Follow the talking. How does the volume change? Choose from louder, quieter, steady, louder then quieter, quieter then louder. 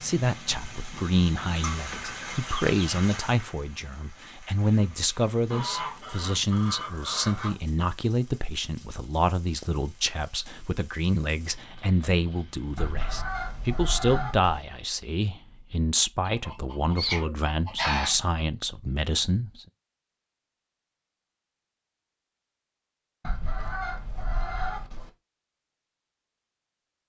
steady.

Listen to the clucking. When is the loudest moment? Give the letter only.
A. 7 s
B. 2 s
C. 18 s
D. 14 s
C.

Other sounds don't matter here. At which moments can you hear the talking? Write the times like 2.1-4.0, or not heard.
0.0-19.6.